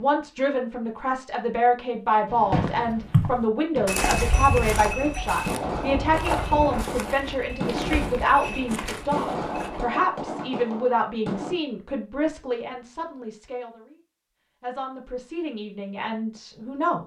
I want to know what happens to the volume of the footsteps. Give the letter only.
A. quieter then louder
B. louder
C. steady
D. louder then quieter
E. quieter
E.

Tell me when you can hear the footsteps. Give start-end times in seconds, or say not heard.
2.5-9.8.